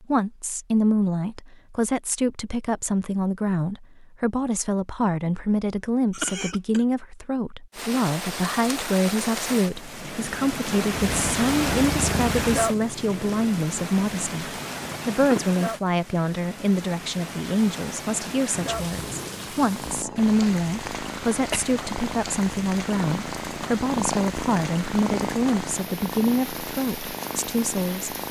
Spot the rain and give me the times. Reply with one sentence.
The rain can be heard from 7.7 to 28.2 s.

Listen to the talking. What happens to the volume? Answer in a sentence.
The loudness of the talking stays about the same.